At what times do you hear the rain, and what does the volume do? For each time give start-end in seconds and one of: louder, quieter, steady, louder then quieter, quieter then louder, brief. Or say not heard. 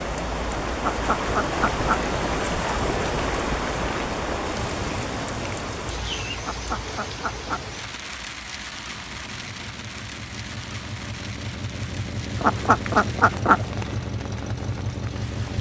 0.0-15.5 quieter.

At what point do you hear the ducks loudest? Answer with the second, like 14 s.
13 s.